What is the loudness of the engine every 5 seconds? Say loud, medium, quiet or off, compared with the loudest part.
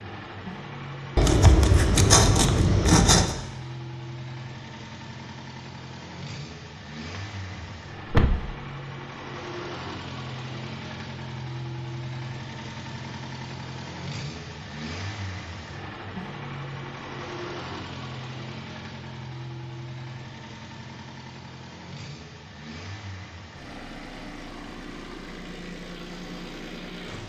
loud, loud, loud, loud, medium, loud.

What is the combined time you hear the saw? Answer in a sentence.
You can hear the saw for 2 seconds altogether.